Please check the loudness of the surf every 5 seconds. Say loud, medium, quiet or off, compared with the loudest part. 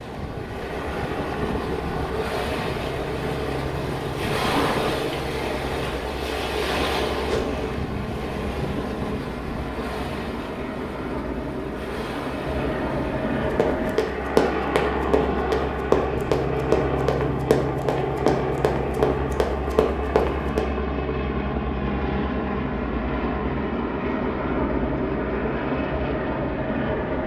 loud, loud, medium, off, off, off.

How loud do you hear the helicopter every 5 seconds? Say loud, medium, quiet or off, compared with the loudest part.
medium, medium, loud, loud, loud, loud.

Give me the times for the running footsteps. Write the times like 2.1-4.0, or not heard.
13.6-20.6.